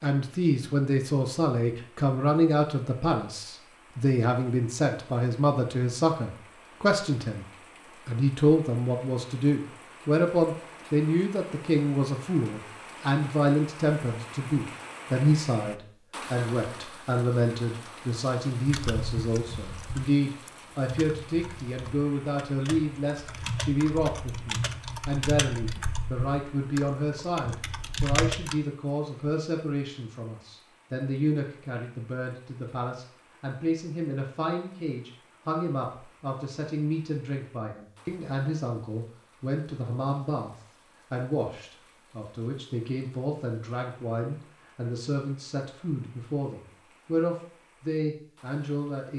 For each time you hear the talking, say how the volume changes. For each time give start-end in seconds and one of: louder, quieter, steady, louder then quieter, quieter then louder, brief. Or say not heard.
0.0-7.5 steady
8.1-49.1 quieter.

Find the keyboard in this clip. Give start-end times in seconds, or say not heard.
18.6-28.6.